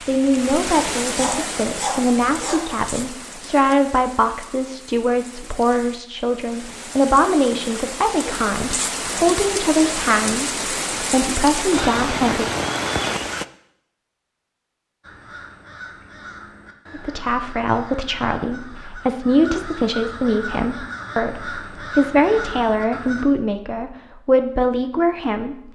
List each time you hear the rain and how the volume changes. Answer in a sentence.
The rain can be heard from 0.0 to 13.4 s, getting quieter then louder.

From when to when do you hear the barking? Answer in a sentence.
You can hear the barking from 1.1 to 2.9 s.